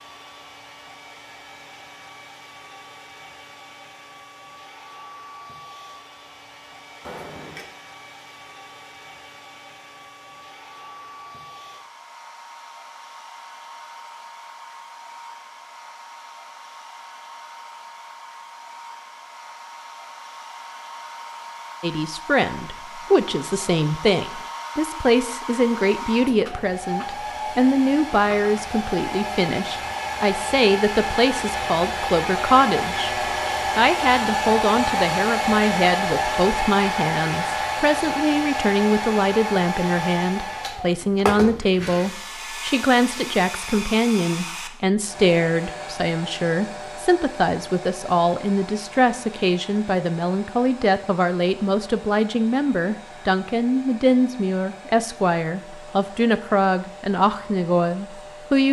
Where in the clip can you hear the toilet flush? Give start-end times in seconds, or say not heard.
7.0-7.7.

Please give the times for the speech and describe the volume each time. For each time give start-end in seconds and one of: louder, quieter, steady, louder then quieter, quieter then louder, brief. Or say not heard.
21.8-58.6 steady.